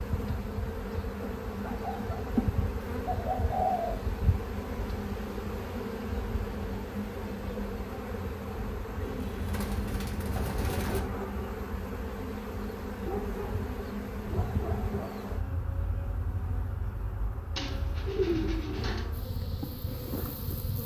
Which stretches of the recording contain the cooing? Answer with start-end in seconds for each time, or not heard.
3.0-3.9, 9.0-11.0, 17.6-19.1.